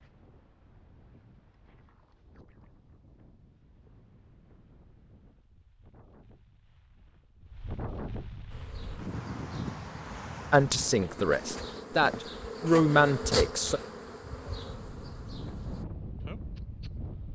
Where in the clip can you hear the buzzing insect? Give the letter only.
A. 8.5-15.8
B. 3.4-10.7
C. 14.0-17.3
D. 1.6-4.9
A.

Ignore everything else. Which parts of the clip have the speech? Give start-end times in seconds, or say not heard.
10.5-13.8.